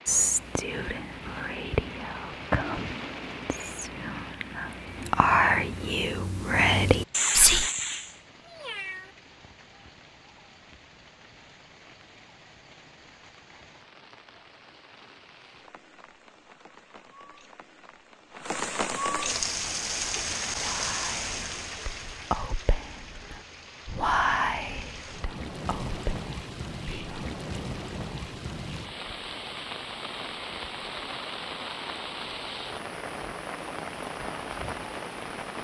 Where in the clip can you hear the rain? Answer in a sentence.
You can hear the rain from 0.0 to 35.5 s.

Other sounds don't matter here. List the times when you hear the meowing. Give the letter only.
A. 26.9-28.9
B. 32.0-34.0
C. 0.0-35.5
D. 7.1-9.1
D.